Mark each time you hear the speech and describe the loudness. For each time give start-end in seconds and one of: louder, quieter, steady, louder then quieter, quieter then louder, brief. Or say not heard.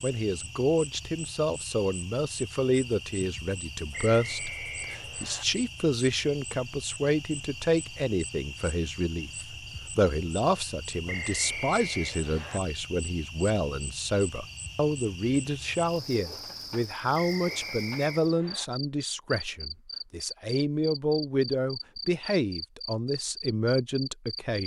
0.0-24.6 steady.